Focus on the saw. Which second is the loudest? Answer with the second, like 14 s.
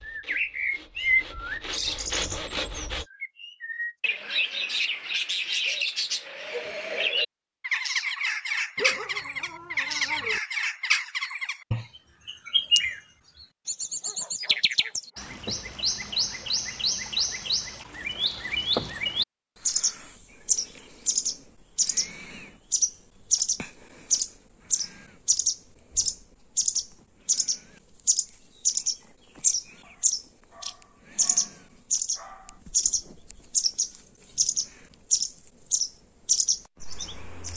2 s.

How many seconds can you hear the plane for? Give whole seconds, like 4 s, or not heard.
not heard.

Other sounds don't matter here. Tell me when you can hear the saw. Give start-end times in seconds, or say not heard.
0.0-3.0.